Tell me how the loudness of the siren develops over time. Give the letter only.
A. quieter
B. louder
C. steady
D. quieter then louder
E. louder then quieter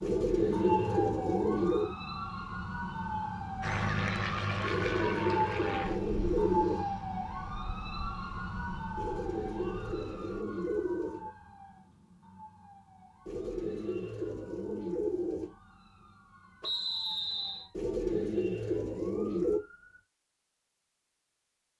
A.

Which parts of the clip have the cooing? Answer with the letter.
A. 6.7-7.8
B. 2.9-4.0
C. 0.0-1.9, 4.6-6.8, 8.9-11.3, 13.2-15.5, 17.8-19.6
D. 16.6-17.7
C.